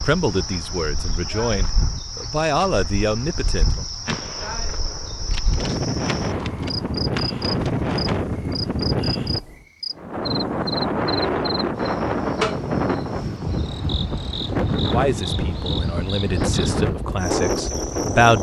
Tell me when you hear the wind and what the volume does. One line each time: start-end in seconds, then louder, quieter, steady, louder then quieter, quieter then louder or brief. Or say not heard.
0.0-18.3 louder.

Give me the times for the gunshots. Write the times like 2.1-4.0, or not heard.
4.0-8.2.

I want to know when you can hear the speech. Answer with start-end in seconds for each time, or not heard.
0.1-3.9, 14.8-18.3.